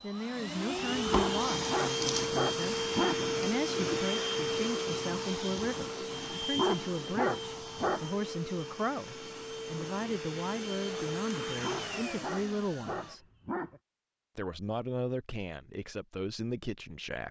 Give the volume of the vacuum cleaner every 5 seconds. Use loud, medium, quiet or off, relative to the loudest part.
loud, medium, medium, off.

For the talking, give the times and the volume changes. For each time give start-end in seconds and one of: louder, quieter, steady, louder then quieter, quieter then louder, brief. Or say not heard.
0.0-13.2 steady
14.3-17.2 brief.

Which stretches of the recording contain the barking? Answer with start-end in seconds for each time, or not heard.
1.1-3.3, 6.5-8.1, 11.6-13.8.